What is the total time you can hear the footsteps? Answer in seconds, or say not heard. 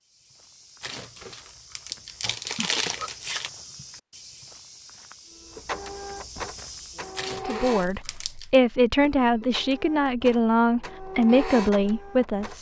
7 s.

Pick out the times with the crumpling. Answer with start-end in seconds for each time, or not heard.
0.8-3.5, 7.2-8.6.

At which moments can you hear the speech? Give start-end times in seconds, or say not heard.
7.5-12.5.